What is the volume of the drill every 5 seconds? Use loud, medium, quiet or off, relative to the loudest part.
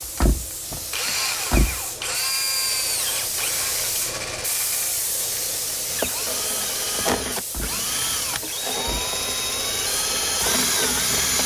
medium, medium, loud.